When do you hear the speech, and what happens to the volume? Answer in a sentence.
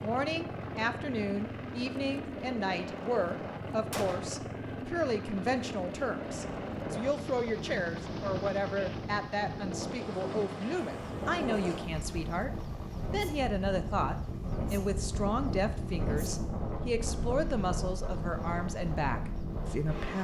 The speech can be heard from 0.0 to 20.2 s, at a steady volume.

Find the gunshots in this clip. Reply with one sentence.
You can hear the gunshots from 3.9 to 4.4 s.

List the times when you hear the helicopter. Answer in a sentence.
You can hear the helicopter from 0.0 to 20.1 s.